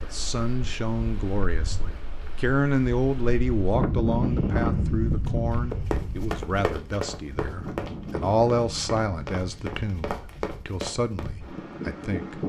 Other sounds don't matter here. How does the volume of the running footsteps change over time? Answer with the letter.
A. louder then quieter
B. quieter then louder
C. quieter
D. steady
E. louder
B.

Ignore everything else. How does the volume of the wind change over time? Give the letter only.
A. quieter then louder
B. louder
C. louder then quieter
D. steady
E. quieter
C.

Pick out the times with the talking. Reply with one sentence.
The talking can be heard from 0.0 to 12.4 s.